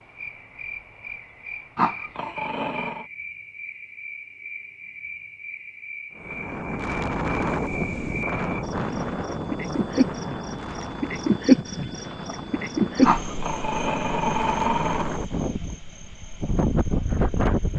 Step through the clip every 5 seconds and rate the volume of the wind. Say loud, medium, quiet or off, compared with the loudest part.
off, loud, medium, loud.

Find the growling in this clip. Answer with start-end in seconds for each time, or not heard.
1.8-3.0, 13.0-15.1.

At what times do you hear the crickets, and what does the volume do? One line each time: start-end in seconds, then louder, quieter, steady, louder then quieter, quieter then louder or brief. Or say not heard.
0.0-17.7 louder then quieter.